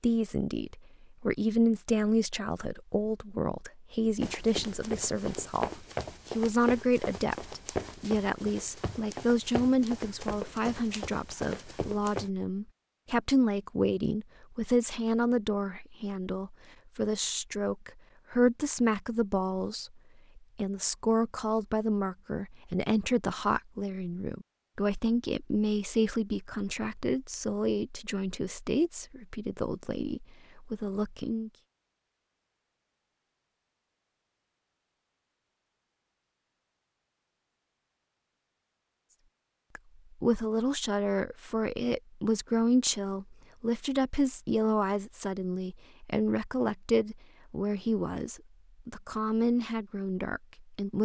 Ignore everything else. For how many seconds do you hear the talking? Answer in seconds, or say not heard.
43 s.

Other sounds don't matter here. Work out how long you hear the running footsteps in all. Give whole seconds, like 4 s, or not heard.
8 s.